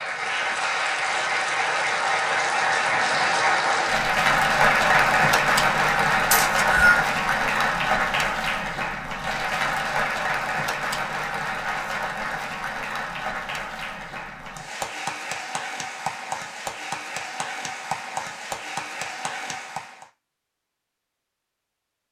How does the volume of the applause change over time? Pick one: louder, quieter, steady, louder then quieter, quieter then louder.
quieter.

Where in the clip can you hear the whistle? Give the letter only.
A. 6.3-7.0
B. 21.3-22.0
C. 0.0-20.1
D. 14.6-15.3
A.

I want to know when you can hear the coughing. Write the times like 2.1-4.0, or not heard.
not heard.